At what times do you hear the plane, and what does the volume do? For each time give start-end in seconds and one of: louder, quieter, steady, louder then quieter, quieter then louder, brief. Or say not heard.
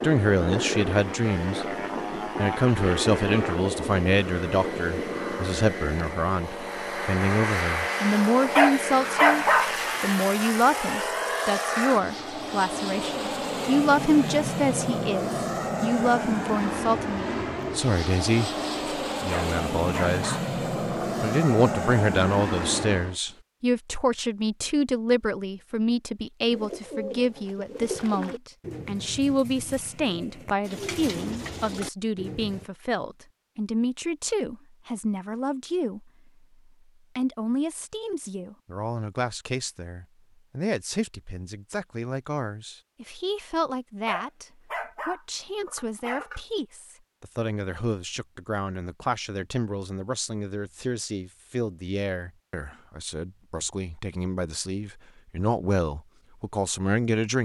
0.0-23.2 steady.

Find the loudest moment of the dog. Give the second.
9 s.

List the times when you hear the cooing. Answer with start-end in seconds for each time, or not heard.
26.5-32.6.